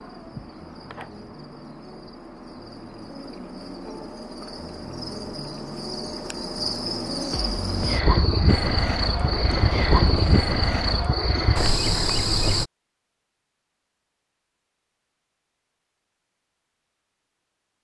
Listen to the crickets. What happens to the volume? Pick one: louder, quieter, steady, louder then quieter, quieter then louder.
louder.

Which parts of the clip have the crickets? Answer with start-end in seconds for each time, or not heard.
0.0-12.7.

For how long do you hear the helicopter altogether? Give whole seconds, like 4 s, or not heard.
3 s.